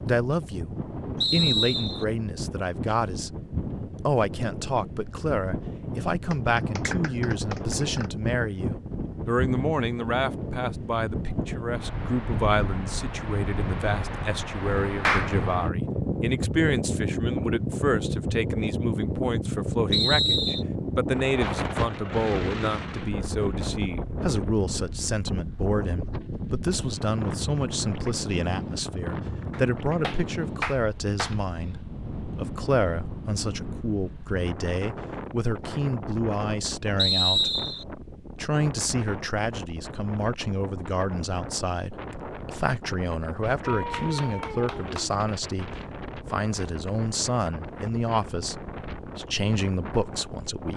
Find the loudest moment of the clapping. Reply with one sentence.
The loudest moment of the clapping is at 15 seconds.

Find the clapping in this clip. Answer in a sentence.
You can hear the clapping from 6.3 to 8.1 s, from 15.0 to 15.4 s, from 29.5 to 31.4 s and from 43.6 to 45.1 s.